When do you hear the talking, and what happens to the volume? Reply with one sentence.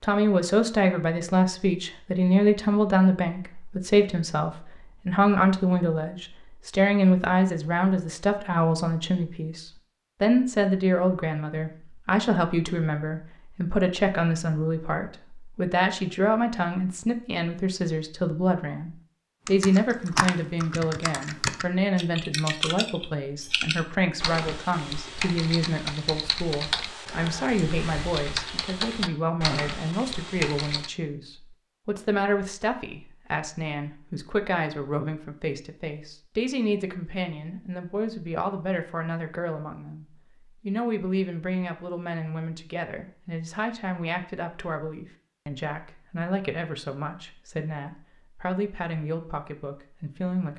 The talking can be heard from 0.0 to 50.5 s, getting quieter.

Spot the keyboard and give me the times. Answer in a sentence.
The keyboard can be heard from 19.4 to 30.9 s.